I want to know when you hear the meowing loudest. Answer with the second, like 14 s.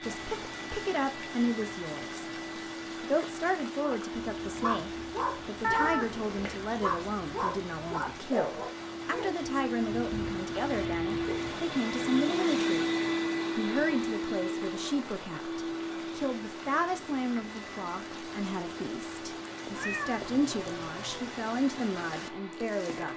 6 s.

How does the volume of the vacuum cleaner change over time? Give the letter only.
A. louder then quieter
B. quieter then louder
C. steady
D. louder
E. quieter
A.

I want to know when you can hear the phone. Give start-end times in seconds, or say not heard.
not heard.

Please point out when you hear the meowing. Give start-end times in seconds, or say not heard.
5.6-6.6, 19.6-21.3.